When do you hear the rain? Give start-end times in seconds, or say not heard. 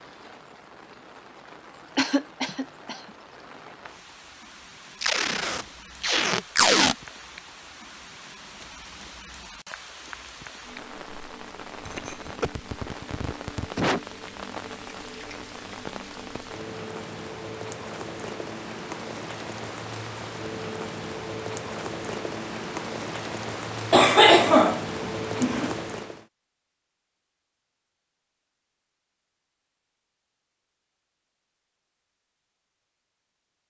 0.0-26.2.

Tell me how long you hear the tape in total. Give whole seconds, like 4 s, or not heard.
2 s.